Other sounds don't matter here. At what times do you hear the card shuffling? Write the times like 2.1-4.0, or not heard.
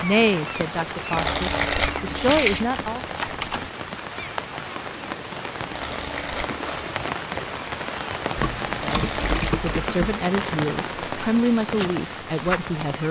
1.1-2.7, 5.7-7.0, 8.8-9.7.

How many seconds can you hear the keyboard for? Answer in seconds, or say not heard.
3 s.